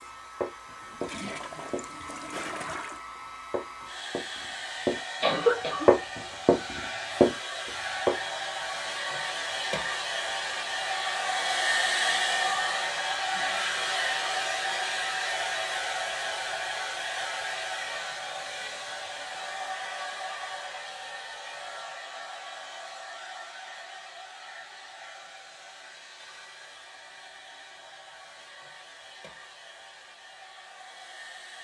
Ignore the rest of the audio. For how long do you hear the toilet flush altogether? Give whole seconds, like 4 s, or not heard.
2 s.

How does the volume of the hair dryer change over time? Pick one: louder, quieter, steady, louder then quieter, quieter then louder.
louder then quieter.